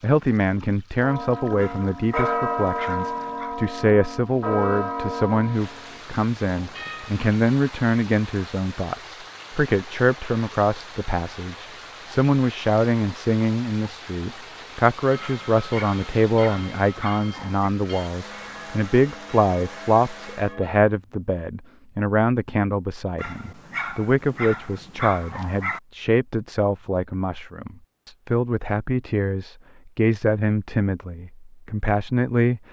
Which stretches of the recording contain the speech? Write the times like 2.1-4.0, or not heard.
0.0-32.6.